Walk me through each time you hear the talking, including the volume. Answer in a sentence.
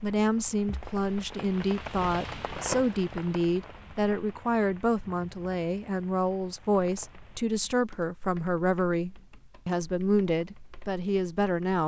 You can hear the talking from 0.0 to 11.8 s, at a steady volume.